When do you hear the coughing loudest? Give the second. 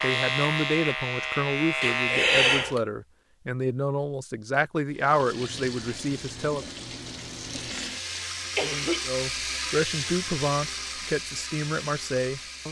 2 s.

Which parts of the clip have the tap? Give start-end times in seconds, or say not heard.
4.9-12.6.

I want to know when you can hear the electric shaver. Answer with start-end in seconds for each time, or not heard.
0.0-2.4.